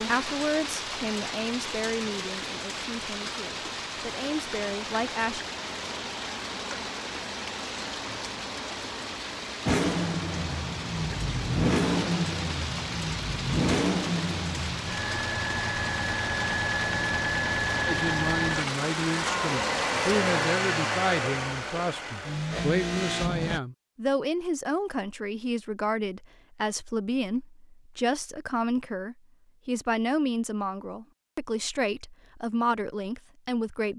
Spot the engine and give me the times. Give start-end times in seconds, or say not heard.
9.7-23.6.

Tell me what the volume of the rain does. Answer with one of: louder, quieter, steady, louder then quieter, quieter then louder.
steady.